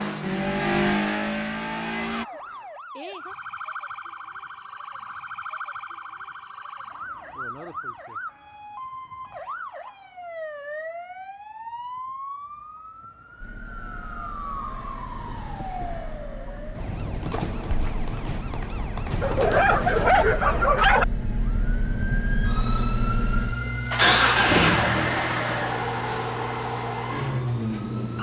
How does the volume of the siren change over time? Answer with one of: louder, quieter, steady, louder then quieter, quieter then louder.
louder.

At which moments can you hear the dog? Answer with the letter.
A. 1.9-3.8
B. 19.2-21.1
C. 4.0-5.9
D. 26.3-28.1
B.